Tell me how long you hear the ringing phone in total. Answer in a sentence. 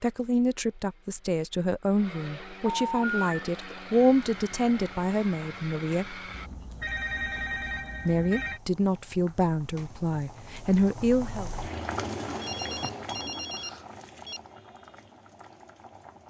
The ringing phone can be heard for 5 seconds in total.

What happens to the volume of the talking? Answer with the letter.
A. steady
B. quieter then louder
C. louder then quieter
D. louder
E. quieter
A.